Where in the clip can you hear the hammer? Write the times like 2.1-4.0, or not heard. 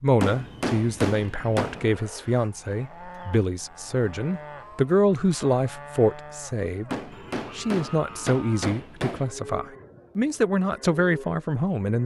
0.2-1.9, 6.8-9.3.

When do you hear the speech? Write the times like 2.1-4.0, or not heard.
0.0-7.0, 7.5-12.0.